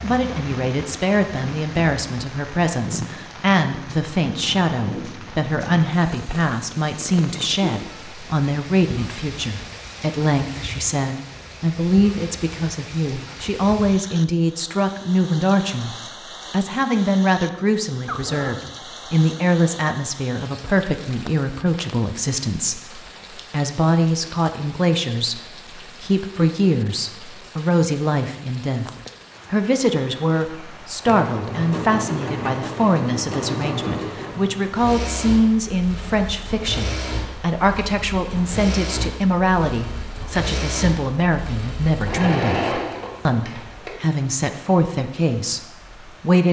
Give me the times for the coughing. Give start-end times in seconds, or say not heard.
18.1-18.8.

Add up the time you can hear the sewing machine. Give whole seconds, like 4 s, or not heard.
13 s.